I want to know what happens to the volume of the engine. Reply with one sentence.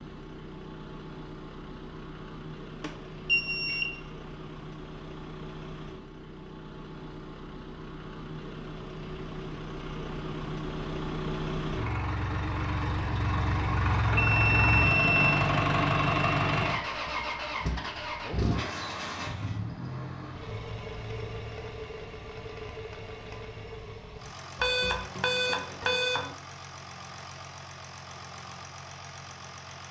The loudness of the engine goes up, then down.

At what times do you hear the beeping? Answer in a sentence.
You can hear the beeping from 2.8 to 3.9 s, from 14.2 to 15.5 s and from 24.6 to 26.3 s.